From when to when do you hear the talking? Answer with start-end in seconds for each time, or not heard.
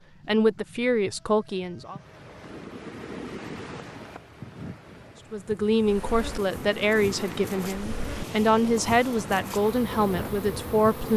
0.2-1.9, 5.3-11.1.